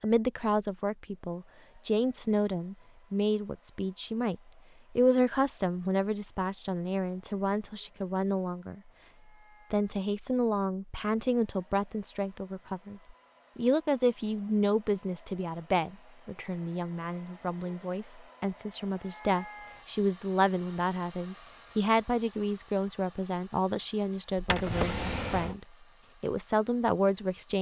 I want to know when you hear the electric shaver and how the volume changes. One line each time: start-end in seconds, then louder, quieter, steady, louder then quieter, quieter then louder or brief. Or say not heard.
not heard.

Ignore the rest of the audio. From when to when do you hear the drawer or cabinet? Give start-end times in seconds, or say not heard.
24.4-25.6.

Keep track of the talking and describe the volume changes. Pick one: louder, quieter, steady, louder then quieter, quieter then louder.
steady.